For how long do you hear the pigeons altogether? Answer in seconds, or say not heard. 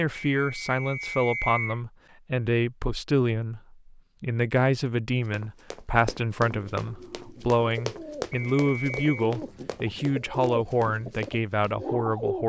6 s.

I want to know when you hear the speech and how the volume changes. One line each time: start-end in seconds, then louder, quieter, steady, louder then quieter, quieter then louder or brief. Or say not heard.
0.0-12.4 steady.